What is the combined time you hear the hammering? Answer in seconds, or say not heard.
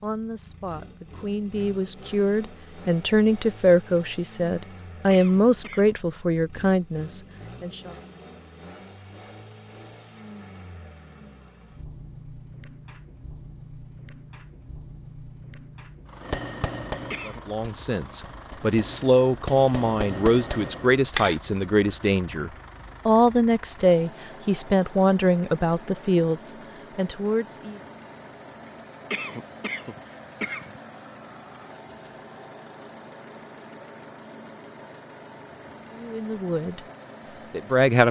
5 s.